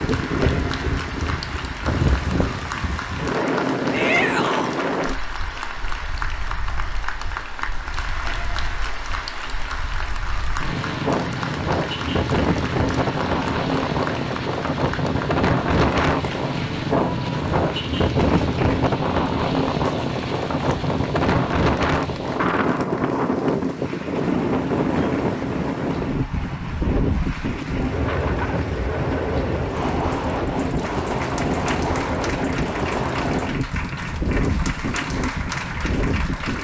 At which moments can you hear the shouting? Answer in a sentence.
You can hear the shouting from 3.9 to 4.8 s.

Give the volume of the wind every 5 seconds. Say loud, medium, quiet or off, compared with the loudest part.
loud, quiet, loud, loud, loud, loud, loud, medium.